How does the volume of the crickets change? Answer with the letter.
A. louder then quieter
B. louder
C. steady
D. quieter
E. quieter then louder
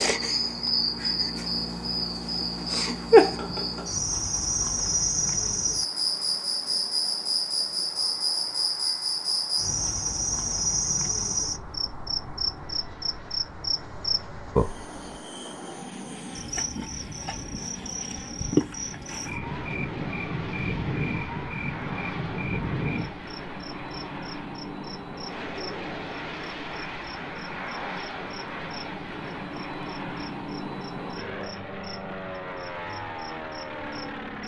D.